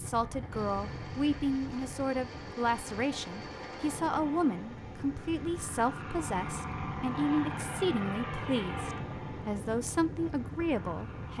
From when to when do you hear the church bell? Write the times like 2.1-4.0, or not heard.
not heard.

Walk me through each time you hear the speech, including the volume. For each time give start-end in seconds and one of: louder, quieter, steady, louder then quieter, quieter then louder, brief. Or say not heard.
0.0-11.3 steady.